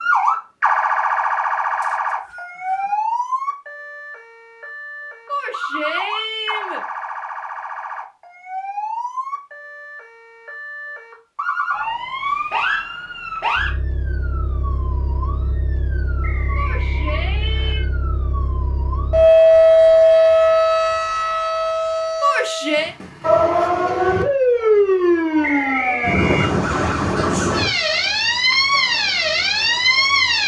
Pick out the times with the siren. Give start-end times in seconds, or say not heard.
0.0-30.4.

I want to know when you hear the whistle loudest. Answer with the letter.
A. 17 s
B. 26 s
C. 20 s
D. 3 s
B.